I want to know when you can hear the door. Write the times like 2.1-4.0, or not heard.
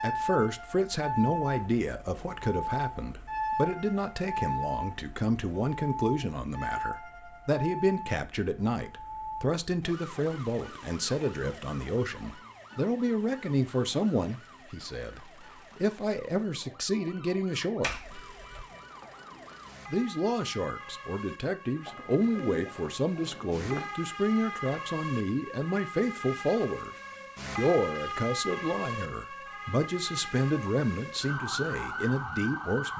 17.8-18.6.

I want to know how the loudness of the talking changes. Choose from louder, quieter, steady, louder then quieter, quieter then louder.
steady.